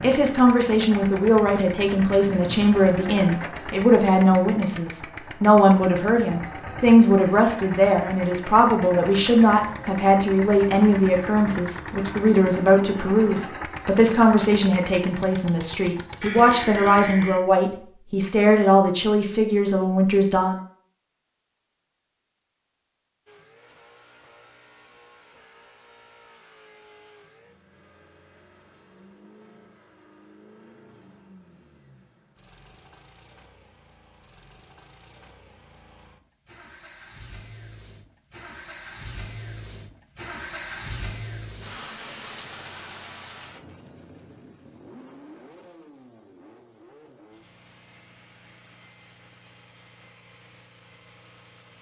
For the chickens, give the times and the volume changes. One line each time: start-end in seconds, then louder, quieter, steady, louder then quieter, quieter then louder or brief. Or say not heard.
not heard.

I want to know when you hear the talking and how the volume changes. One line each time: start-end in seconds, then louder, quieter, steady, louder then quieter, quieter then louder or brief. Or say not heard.
0.0-20.6 steady.